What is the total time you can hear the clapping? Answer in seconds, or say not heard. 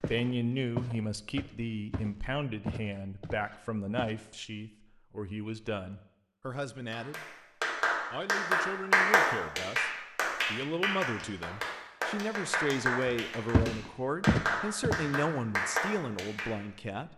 10 s.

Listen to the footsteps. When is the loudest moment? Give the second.
14 s.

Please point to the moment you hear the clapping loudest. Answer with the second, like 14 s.
9 s.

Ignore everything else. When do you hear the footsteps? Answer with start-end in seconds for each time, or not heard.
0.0-4.2, 13.1-15.2.